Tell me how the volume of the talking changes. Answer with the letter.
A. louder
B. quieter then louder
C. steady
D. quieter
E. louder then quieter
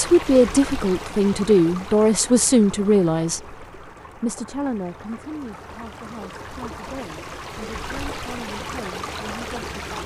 D.